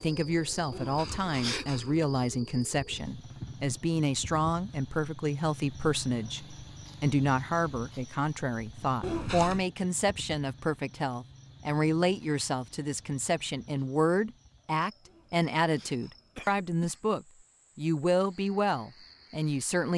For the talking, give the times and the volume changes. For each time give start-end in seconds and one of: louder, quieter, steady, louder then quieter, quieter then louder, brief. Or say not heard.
0.0-19.9 steady.